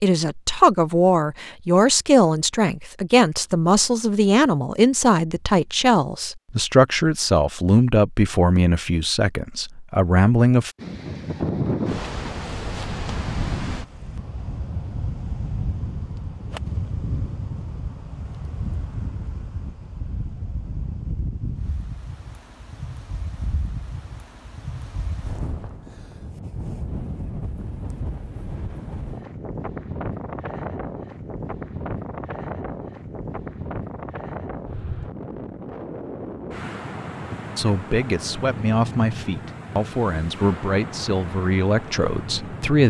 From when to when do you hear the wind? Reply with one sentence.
You can hear the wind from 10.8 to 42.8 s.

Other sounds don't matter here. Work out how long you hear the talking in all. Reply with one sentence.
You can hear the talking for 16 seconds altogether.